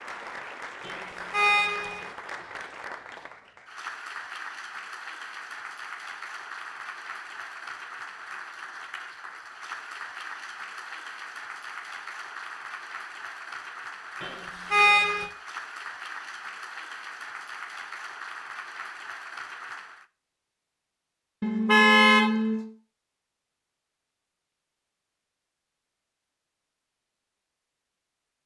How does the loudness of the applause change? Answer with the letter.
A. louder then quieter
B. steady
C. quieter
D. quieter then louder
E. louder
B.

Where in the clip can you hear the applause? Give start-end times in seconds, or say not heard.
0.0-20.1.